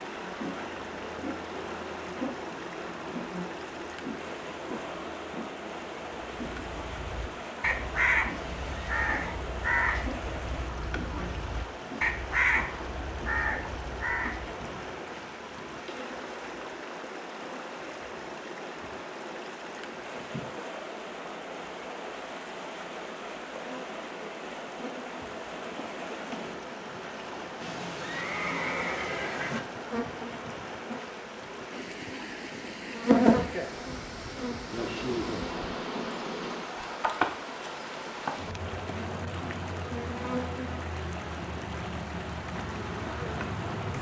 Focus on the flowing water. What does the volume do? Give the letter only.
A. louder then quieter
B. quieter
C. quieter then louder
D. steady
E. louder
D.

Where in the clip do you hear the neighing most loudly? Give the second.
29 s.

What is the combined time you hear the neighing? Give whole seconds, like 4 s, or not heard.
3 s.